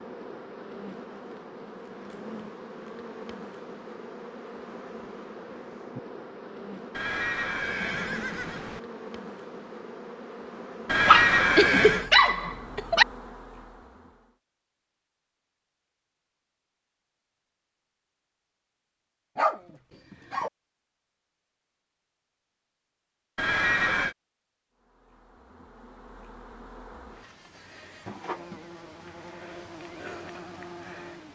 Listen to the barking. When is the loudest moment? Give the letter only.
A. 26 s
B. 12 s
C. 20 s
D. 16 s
B.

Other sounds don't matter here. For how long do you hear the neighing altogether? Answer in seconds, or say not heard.
4 s.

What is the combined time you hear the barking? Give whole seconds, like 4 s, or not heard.
3 s.